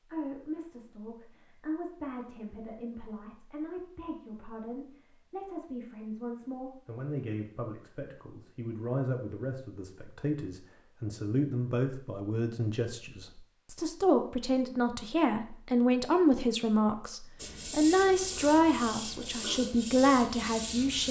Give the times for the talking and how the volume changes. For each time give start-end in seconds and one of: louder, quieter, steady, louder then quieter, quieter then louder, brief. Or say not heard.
0.0-21.0 louder.